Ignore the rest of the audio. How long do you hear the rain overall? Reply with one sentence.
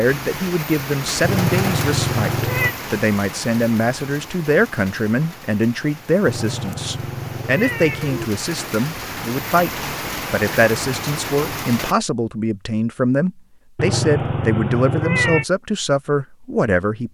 The rain can be heard for 12 seconds in total.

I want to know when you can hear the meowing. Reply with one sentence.
You can hear the meowing from 1.2 to 2.8 s, from 6.2 to 8.2 s and from 13.8 to 15.4 s.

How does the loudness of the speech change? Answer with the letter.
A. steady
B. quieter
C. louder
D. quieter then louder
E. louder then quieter
A.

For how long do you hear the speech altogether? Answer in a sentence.
You can hear the speech for 17 seconds altogether.